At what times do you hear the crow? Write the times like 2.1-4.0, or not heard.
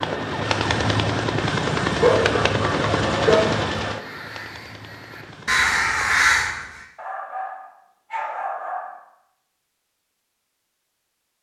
3.9-6.8.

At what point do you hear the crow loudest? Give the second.
6 s.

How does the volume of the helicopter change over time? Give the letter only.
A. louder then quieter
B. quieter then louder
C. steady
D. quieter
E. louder
D.